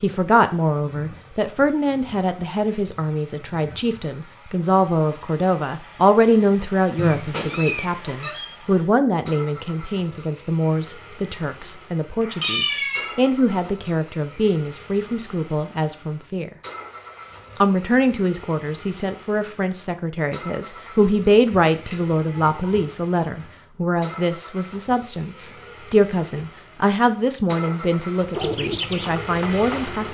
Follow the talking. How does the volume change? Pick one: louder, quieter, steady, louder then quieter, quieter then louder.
steady.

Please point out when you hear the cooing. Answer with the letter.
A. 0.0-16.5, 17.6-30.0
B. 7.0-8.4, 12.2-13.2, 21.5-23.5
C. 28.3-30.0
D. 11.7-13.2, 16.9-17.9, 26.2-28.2
C.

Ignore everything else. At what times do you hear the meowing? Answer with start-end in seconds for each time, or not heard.
7.0-8.4, 12.2-13.2, 21.5-23.5.